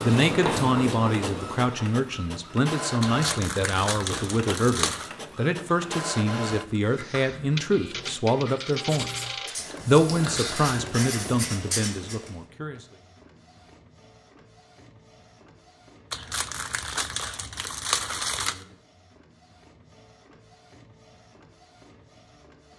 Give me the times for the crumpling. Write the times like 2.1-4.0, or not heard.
3.0-5.1, 16.1-18.6.